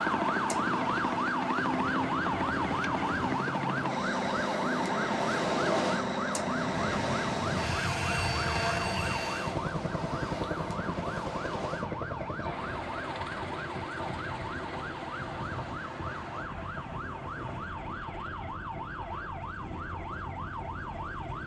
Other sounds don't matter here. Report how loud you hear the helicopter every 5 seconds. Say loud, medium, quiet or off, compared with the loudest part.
loud, loud, medium, quiet, quiet.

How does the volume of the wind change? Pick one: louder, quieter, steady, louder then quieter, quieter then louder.
louder then quieter.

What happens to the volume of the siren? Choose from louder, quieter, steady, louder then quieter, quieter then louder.
quieter.